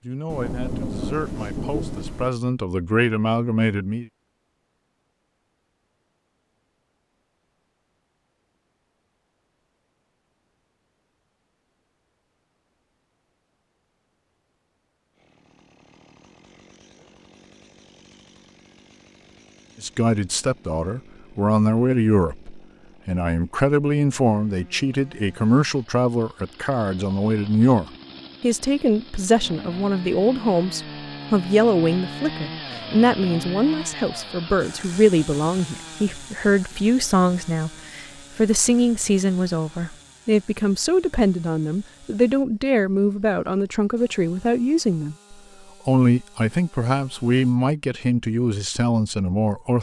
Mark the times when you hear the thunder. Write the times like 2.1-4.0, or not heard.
0.2-2.3.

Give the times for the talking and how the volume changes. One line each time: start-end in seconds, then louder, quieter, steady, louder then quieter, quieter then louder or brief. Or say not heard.
0.0-4.0 louder
19.8-49.7 steady.